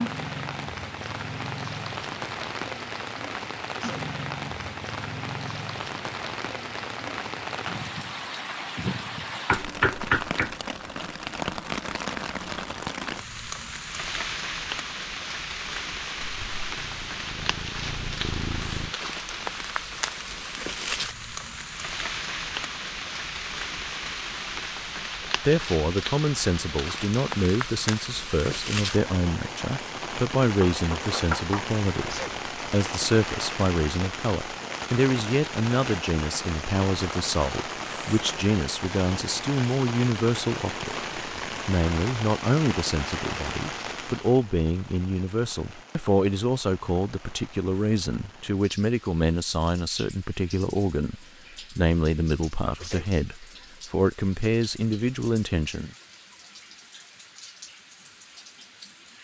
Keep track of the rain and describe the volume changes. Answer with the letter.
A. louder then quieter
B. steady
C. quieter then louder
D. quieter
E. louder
D.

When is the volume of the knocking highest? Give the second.
10 s.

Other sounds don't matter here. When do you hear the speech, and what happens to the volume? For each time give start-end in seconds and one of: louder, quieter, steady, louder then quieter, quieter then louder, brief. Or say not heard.
25.4-55.9 steady.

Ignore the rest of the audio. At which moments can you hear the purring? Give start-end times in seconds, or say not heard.
16.2-18.9.